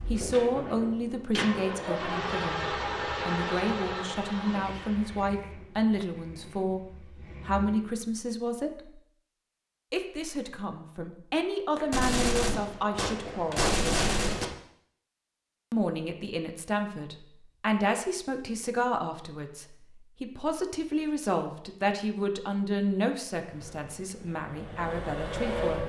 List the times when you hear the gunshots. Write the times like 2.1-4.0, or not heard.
11.8-14.4.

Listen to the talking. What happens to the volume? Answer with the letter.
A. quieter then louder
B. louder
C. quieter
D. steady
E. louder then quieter
D.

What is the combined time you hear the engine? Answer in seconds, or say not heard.
10 s.